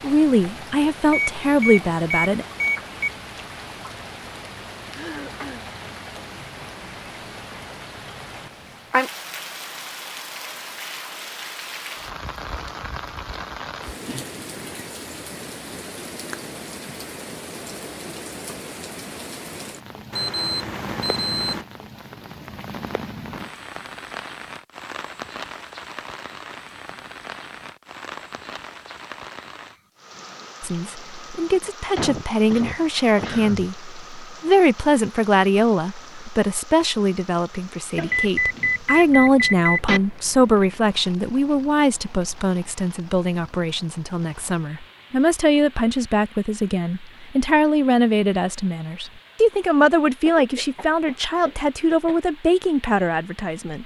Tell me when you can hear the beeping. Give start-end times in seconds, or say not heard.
1.1-3.1, 20.1-21.6, 38.0-40.0.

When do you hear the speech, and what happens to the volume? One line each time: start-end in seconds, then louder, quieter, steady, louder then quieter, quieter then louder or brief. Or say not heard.
0.0-2.5 brief
30.6-53.8 steady.